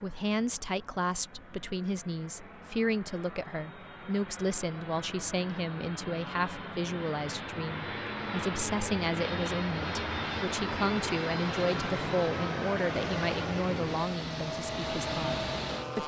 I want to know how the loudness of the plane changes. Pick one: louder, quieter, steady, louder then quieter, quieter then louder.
louder.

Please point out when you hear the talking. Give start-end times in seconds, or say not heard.
0.0-16.0.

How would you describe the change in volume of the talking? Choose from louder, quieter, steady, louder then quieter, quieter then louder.
steady.